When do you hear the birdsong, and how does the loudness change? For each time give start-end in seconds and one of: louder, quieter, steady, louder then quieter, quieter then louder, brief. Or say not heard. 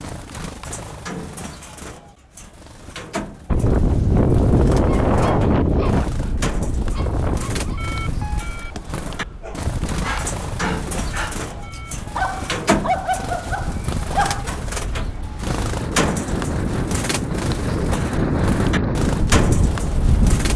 0.0-20.5 louder.